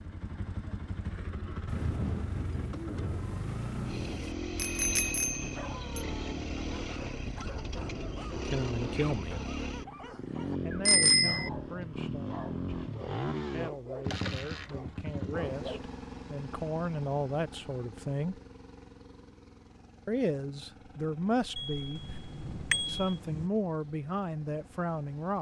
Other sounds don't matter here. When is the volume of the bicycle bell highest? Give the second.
11 s.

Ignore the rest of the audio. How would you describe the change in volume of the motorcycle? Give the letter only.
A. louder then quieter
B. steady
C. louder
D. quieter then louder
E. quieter
E.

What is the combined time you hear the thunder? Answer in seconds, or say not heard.
4 s.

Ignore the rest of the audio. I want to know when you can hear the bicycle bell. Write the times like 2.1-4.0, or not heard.
4.5-6.0, 10.8-11.5, 21.6-23.0.